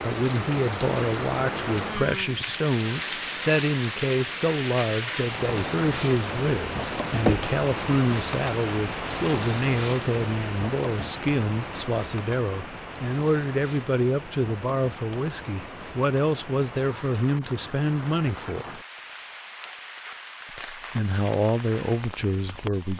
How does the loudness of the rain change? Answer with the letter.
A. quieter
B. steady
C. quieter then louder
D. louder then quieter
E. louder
A.